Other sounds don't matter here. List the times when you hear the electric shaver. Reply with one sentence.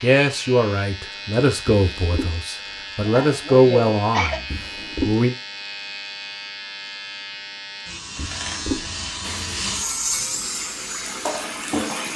You can hear the electric shaver from 0.0 to 12.1 s.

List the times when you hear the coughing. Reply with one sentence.
You can hear the coughing from 3.0 to 4.4 s.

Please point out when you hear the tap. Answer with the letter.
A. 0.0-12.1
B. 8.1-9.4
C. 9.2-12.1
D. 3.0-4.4
C.